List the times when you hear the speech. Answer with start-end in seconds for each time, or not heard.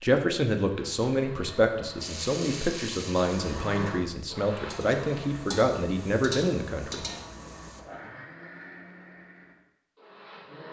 0.0-7.0.